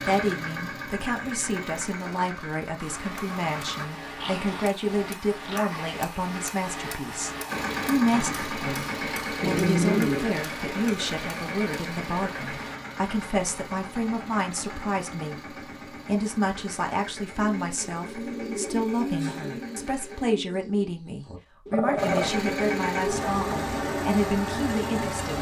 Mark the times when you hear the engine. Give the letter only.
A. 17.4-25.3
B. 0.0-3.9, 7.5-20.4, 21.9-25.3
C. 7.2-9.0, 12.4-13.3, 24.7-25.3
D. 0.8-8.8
B.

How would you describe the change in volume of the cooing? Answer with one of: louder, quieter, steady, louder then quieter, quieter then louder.
quieter then louder.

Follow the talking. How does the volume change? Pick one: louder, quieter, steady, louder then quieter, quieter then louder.
steady.